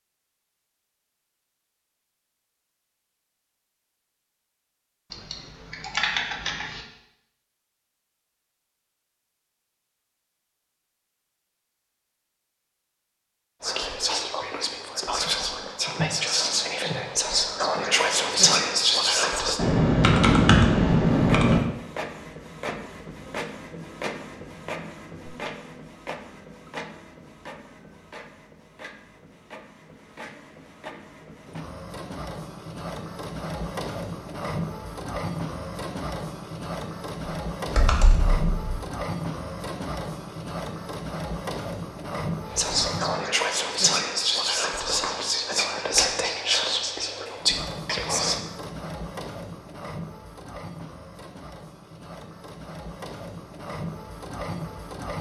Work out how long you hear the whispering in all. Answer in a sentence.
The whispering can be heard for 12 seconds in total.